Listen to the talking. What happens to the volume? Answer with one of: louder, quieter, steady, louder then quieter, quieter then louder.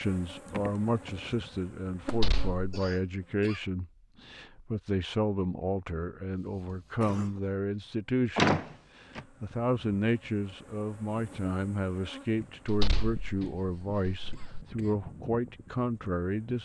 steady.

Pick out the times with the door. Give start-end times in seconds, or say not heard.
2.0-2.8, 8.3-9.2, 12.7-14.7.